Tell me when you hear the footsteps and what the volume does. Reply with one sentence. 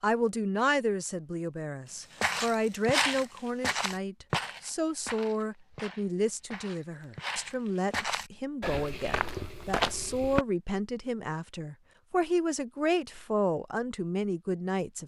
You can hear the footsteps from 2.2 to 10.4 s, getting quieter then louder.